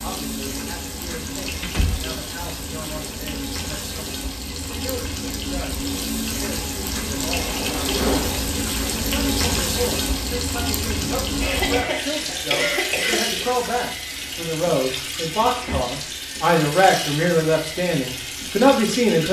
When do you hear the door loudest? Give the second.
8 s.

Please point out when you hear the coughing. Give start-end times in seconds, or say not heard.
11.4-13.4.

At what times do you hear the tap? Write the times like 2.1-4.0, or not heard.
0.0-19.2.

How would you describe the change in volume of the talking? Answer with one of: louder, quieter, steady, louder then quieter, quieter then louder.
louder.